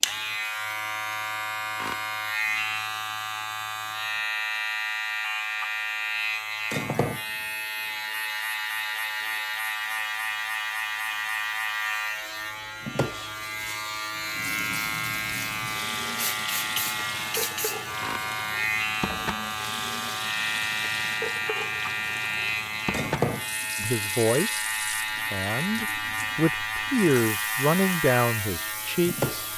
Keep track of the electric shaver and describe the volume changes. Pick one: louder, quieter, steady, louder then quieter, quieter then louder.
steady.